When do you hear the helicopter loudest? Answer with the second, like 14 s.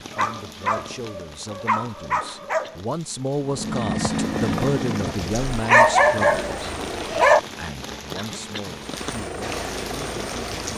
4 s.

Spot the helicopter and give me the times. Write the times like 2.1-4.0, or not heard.
3.4-7.3, 8.7-10.7.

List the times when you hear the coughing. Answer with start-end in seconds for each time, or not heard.
2.2-2.9, 8.2-8.8.